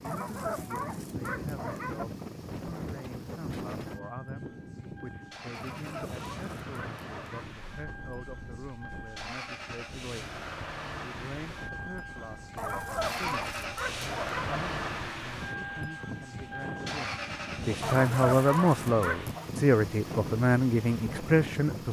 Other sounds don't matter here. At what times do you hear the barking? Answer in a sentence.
You can hear the barking from 0.0 to 2.0 s, from 5.5 to 7.5 s, from 12.6 to 14.4 s and from 17.8 to 19.4 s.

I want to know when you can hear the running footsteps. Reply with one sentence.
The running footsteps can't be heard in this clip.